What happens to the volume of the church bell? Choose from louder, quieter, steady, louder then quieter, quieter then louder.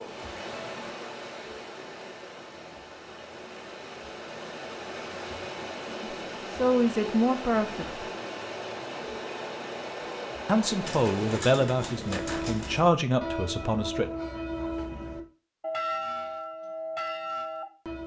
steady.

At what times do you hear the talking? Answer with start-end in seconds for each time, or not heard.
6.0-8.1, 10.4-14.1.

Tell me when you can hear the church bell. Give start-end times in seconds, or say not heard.
11.8-18.0.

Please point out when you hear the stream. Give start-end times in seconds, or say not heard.
0.0-11.4.